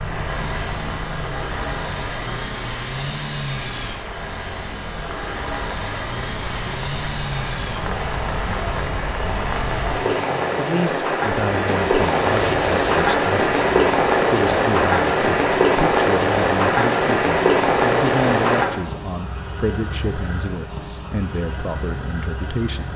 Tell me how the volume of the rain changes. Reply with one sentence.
The volume of the rain goes up.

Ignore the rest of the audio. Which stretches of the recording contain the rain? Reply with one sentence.
You can hear the rain from 0.0 to 18.6 s.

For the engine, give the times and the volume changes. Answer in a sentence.
You can hear the engine from 0.0 to 22.9 s, at a steady volume.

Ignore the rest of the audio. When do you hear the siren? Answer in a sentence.
The siren can't be heard in this clip.